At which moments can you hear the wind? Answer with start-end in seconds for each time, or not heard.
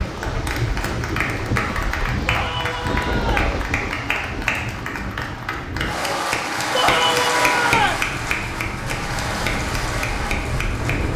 0.0-11.1.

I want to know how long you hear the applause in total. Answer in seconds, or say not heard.
11 s.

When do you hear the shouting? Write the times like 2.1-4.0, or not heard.
2.2-3.5, 6.7-8.1.